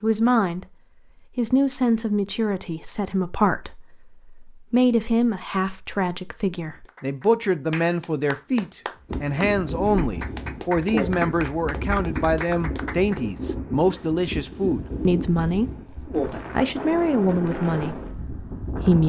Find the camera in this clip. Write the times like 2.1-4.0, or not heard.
not heard.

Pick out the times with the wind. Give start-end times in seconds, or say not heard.
9.1-19.0.